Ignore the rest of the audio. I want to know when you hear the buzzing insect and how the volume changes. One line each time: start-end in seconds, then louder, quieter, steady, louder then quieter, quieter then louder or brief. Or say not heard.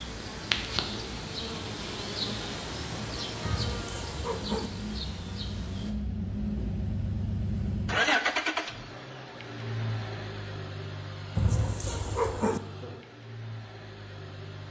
0.0-6.0 quieter.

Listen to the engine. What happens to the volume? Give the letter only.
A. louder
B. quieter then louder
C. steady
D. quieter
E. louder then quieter
E.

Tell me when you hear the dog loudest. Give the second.
12 s.